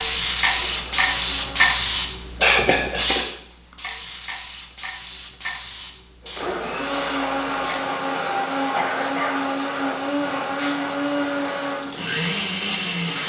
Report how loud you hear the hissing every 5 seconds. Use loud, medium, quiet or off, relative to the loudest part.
loud, quiet, quiet.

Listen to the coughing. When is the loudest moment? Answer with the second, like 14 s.
3 s.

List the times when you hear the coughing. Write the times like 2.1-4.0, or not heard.
2.4-3.2, 8.8-9.4.